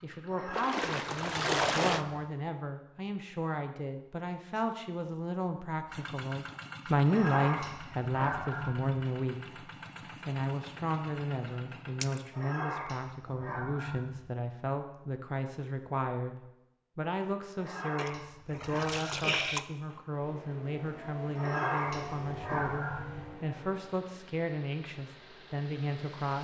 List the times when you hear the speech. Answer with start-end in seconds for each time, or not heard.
0.0-26.3.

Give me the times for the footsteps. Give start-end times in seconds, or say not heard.
not heard.